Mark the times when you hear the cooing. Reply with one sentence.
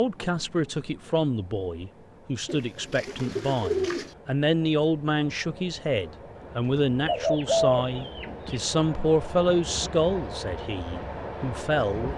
The cooing can be heard from 2.5 to 4.1 s and from 7.0 to 8.6 s.